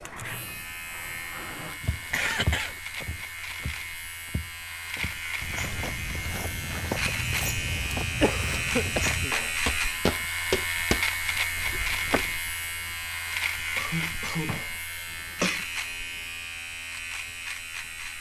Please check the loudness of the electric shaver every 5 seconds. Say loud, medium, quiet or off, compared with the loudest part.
medium, loud, loud, medium.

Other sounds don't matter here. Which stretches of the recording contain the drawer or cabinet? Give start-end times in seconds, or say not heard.
0.0-1.8, 8.8-9.6, 14.0-15.6.